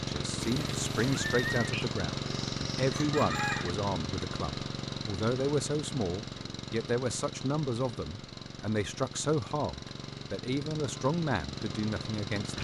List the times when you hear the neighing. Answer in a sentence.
You can hear the neighing from 0.4 to 1.7 s.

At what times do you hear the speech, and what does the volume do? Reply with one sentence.
You can hear the speech from 0.1 to 12.5 s, at a steady volume.